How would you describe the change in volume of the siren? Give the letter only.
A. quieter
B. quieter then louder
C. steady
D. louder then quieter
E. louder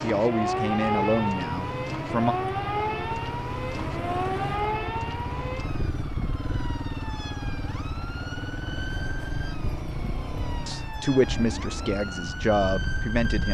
A.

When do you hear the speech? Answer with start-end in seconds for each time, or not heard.
0.0-2.4, 10.7-13.4.